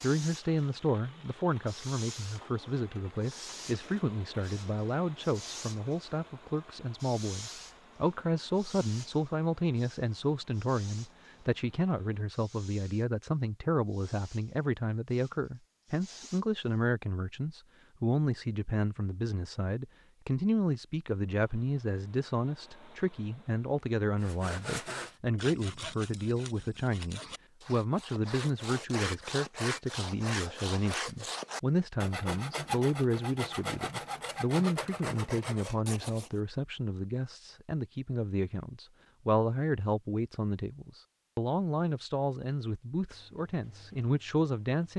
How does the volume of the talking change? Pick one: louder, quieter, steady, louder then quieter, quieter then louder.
steady.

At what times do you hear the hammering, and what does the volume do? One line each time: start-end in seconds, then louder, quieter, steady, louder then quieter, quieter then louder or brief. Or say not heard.
not heard.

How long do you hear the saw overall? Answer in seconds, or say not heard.
12 s.